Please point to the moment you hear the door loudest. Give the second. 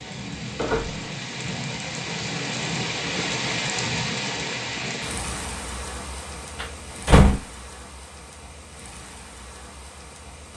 7 s.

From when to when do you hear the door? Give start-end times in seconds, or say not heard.
0.6-1.1, 6.5-7.5.